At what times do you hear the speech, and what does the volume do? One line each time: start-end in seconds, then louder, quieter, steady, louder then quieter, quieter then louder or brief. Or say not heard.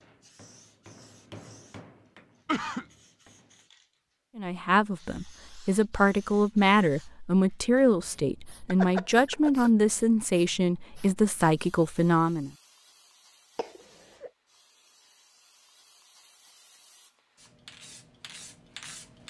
4.3-12.5 steady.